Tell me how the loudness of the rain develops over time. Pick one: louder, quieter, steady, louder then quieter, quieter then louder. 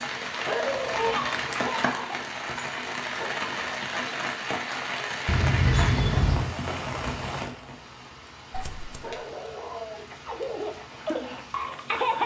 quieter.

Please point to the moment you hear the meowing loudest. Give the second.
6 s.